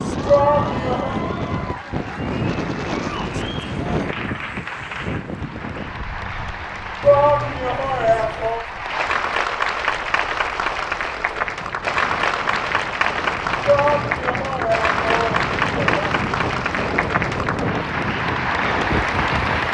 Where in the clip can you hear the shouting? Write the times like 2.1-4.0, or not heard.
0.2-1.2, 7.0-8.7, 13.7-16.1.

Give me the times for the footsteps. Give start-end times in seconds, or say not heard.
not heard.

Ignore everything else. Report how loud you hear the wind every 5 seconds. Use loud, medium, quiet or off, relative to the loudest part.
loud, medium, medium, loud.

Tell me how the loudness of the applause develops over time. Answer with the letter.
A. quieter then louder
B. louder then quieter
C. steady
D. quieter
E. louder
E.